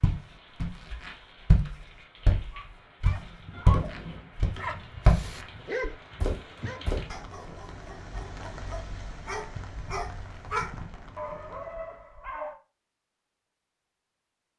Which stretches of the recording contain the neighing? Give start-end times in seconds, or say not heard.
3.5-4.2.